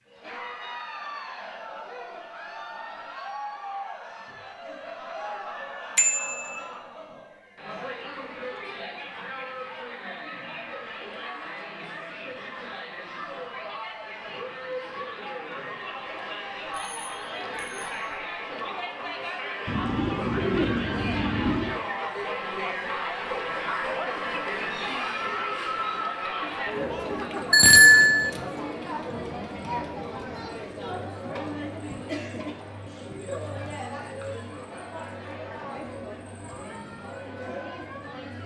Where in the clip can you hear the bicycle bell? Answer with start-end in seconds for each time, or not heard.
6.0-6.6, 16.7-17.9, 27.5-28.3.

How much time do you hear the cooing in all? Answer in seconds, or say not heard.
2 s.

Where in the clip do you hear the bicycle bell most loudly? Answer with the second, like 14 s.
28 s.